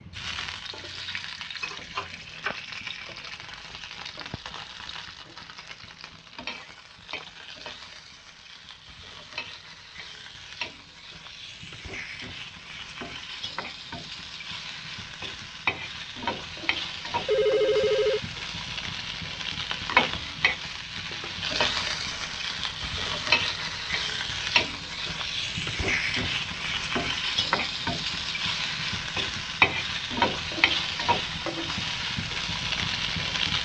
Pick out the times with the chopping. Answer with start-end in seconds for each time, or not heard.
not heard.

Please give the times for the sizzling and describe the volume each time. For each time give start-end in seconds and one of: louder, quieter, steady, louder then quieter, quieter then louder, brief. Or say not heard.
0.0-33.5 louder.